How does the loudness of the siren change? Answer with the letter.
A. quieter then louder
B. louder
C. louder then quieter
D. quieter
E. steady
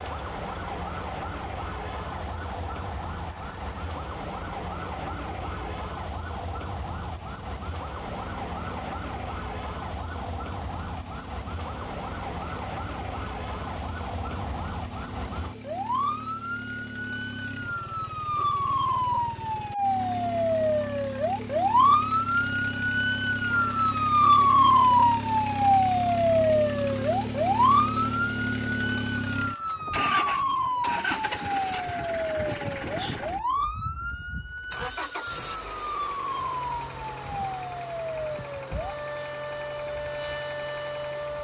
C.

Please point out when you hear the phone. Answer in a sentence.
The phone can't be heard in this clip.